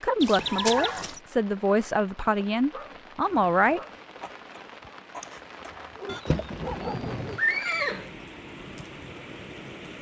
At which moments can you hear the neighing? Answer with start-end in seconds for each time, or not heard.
0.2-1.2, 6.0-8.1.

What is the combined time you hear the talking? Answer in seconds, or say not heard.
4 s.